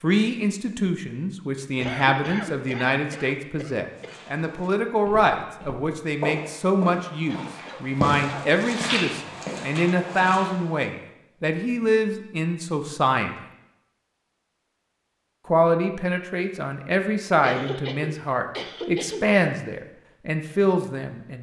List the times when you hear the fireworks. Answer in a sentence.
The fireworks can't be heard in this clip.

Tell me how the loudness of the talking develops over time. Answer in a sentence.
The volume of the talking stays about the same.